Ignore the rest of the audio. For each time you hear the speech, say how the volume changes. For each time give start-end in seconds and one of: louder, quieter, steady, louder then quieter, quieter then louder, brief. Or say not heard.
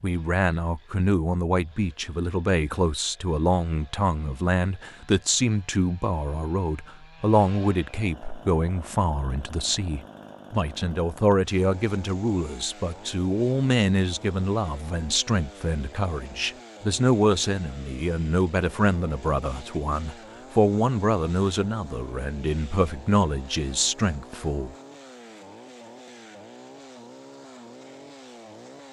0.0-24.7 steady.